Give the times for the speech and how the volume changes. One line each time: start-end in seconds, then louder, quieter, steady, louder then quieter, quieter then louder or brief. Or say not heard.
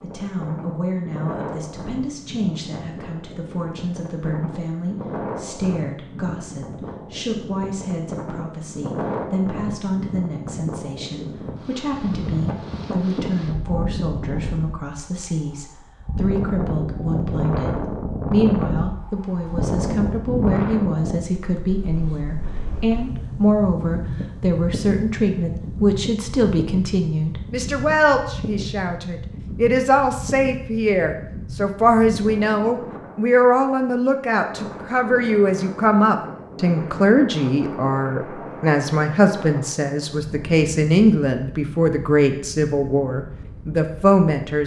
0.0-44.6 louder.